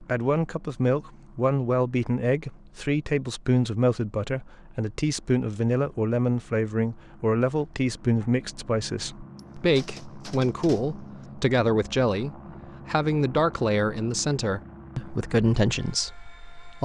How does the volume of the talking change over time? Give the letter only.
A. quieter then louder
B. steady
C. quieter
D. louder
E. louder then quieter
B.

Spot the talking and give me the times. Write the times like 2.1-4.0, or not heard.
0.0-16.8.